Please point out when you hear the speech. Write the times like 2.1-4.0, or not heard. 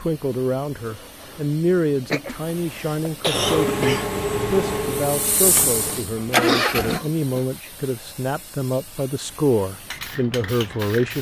0.0-11.1.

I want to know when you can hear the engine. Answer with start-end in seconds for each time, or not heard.
3.3-7.0.